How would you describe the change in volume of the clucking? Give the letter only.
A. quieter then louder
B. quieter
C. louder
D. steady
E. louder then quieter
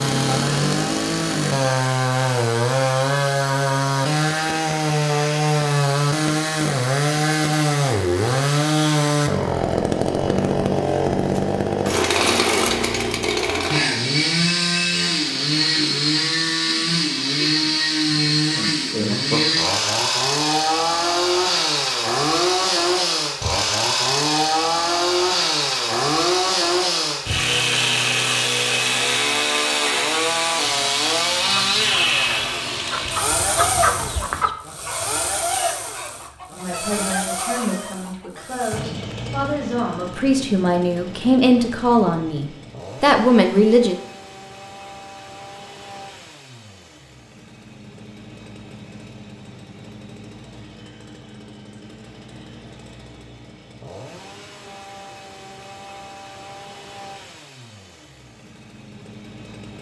E.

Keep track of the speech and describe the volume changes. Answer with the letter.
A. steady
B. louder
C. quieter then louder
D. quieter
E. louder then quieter
B.